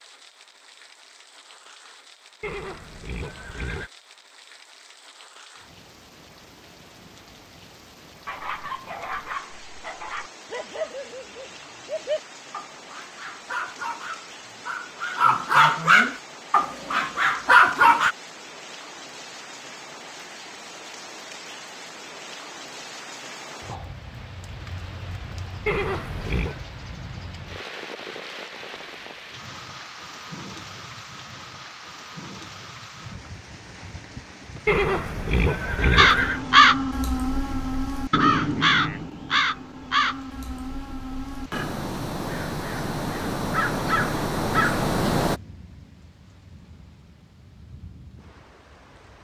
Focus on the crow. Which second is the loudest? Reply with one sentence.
The loudest moment of the crow is at 37 seconds.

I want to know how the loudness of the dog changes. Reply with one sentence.
The loudness of the dog goes up.